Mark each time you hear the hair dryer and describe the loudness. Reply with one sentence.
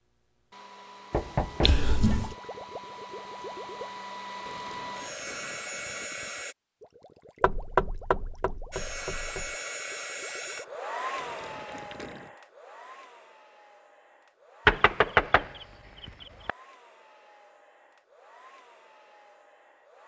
The hair dryer can be heard from 0.0 to 6.5 s, getting louder; and from 8.7 to 20.0 s, getting quieter.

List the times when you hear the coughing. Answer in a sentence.
You can hear the coughing from 1.6 to 2.4 s.